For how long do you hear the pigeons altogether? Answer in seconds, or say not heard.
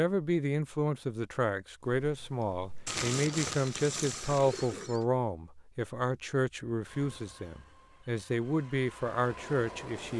2 s.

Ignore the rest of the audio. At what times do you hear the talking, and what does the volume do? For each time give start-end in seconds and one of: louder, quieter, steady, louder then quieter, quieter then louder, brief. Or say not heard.
0.0-10.1 steady.